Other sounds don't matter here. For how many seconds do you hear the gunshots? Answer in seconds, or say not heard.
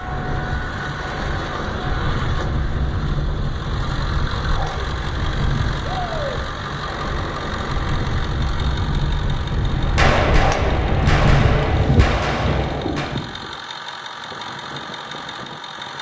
3 s.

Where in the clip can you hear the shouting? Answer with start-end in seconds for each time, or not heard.
5.8-6.5.